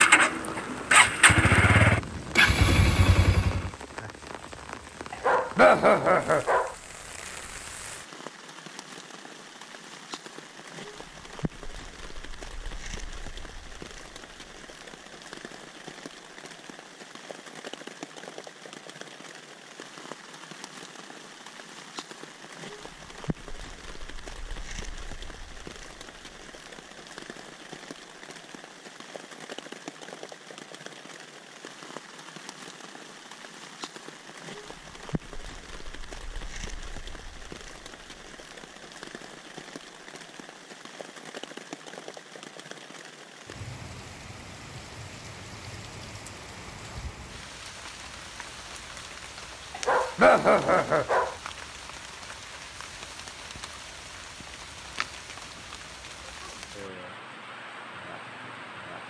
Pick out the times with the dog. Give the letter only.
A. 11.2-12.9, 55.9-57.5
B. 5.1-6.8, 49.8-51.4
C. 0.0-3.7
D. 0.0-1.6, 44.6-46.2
B.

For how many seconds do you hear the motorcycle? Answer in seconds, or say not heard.
4 s.